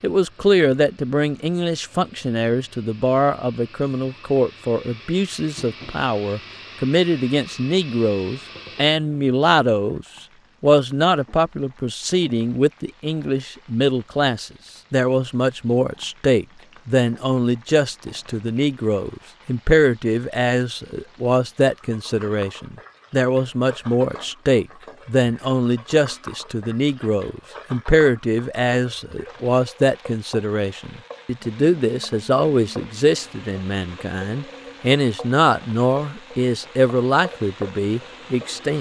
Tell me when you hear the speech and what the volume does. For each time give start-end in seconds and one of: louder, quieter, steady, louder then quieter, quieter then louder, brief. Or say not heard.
0.0-38.7 steady.